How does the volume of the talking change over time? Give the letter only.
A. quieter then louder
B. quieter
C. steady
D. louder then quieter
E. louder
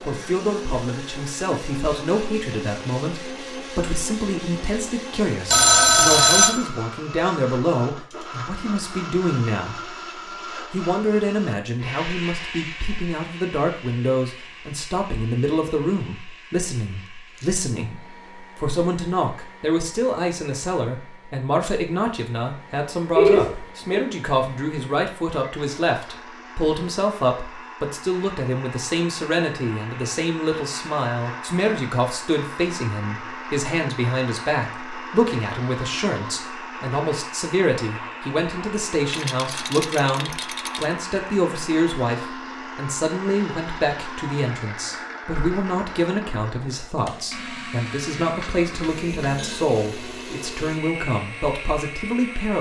C.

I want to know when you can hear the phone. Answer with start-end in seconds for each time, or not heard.
5.5-6.5, 23.1-24.1, 48.4-49.6.